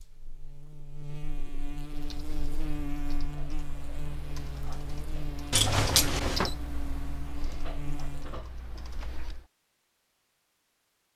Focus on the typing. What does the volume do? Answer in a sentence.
The volume of the typing goes up, then down.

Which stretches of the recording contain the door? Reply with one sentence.
The door can be heard from 5.5 to 6.5 s.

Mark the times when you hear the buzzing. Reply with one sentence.
The buzzing can be heard from 0.0 to 8.4 s.